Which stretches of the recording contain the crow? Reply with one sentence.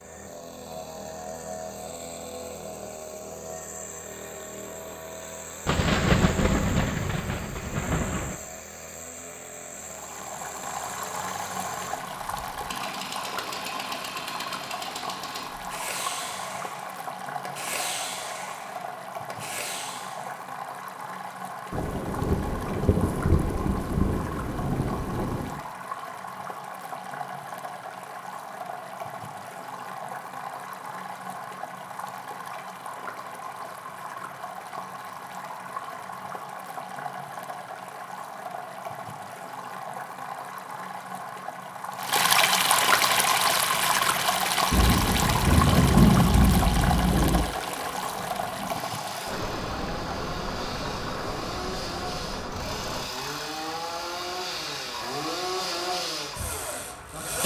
The crow can't be heard in this clip.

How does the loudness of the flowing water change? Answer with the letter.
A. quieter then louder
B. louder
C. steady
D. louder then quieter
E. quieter
D.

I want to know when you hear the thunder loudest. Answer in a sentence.
The loudest moment of the thunder is at 46 seconds.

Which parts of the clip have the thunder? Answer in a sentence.
The thunder can be heard from 5.7 to 8.3 s, from 21.7 to 25.6 s and from 44.7 to 47.5 s.